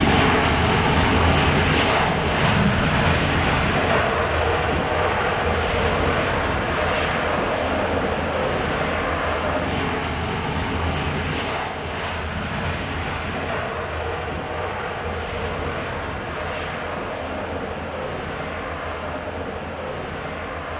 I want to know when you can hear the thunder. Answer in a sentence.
The thunder can be heard from 1.9 to 4.0 s.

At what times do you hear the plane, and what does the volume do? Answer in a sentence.
You can hear the plane from 0.0 to 20.7 s, getting quieter.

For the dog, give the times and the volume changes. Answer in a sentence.
The dog can't be heard in this clip.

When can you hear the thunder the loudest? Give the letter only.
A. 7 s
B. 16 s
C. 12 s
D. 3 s
D.